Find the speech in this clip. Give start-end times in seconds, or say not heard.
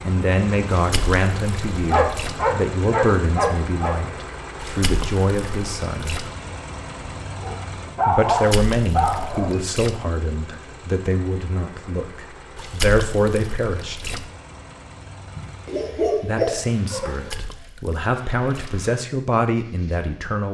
0.0-6.2, 8.1-13.9, 16.2-20.4.